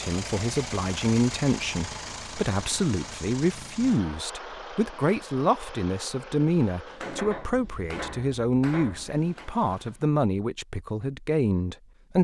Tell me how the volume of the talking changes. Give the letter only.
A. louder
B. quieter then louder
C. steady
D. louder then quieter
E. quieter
C.